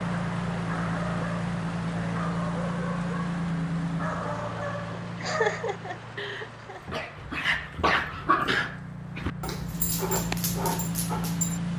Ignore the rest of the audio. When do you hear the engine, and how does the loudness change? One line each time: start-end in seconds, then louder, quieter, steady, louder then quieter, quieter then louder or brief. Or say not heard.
0.0-11.7 quieter then louder.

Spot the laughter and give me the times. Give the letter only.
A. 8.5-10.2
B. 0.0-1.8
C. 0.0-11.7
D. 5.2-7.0
D.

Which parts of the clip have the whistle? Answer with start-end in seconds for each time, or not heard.
not heard.